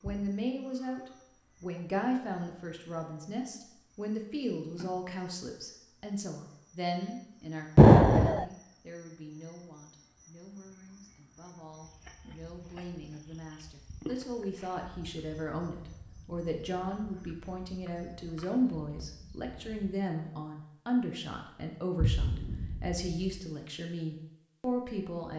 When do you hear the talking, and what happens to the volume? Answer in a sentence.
The talking can be heard from 0.0 to 25.3 s, getting quieter then louder.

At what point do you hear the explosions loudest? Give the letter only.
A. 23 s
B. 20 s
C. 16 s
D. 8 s
D.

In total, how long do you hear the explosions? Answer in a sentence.
You can hear the explosions for 2 seconds altogether.